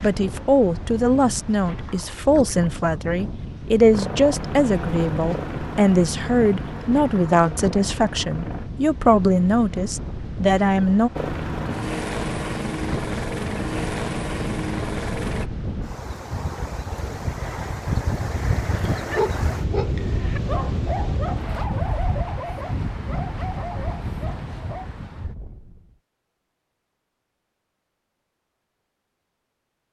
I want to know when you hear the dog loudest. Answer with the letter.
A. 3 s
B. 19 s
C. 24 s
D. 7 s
B.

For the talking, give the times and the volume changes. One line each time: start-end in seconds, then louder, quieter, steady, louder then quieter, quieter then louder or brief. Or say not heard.
0.0-11.1 steady.